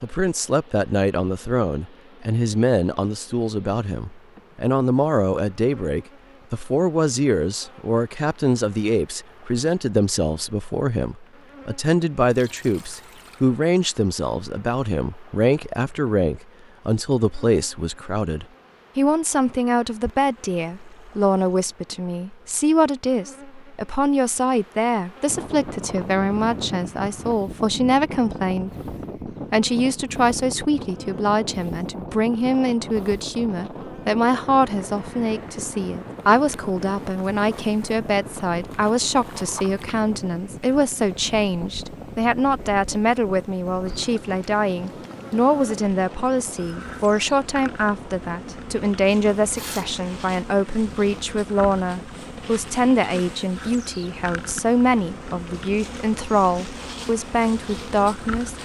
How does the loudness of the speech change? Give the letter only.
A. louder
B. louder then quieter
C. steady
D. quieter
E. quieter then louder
C.